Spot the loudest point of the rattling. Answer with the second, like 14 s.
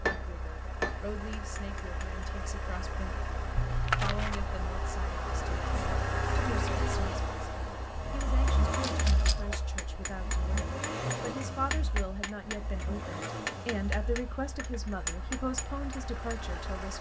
4 s.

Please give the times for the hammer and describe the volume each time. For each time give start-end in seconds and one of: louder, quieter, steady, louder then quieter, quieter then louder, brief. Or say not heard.
0.1-2.2 brief
8.2-16.4 steady.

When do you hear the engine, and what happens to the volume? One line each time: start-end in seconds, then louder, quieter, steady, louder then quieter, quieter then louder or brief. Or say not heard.
0.0-16.9 louder then quieter.